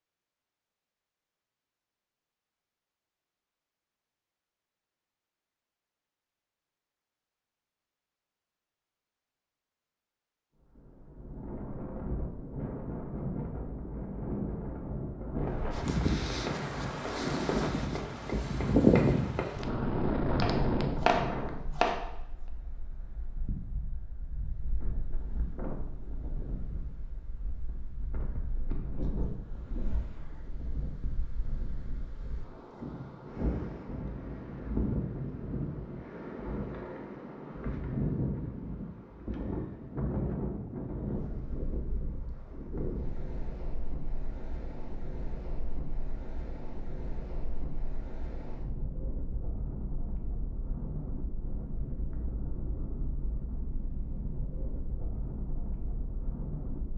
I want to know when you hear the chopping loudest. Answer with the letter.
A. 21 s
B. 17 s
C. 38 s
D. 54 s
A.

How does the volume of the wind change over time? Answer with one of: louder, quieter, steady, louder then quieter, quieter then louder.
quieter.